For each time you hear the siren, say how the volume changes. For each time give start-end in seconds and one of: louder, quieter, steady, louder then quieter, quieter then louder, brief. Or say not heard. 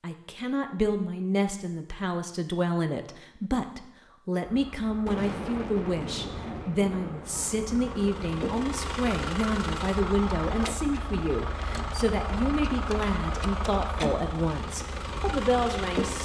not heard.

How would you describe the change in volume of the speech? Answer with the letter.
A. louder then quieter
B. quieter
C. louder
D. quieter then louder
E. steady
E.